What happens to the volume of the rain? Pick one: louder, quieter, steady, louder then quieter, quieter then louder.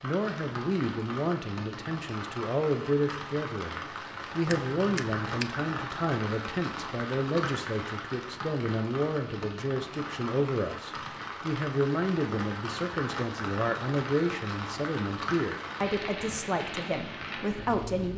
steady.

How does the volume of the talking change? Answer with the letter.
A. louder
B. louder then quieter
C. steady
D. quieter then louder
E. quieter
C.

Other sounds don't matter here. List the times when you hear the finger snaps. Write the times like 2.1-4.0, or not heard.
4.5-5.5.